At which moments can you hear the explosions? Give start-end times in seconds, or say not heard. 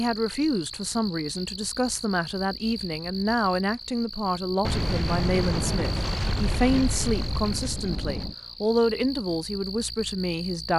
4.6-8.3.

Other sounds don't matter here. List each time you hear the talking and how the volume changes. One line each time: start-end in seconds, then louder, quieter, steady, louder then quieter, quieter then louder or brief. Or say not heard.
0.0-10.7 steady.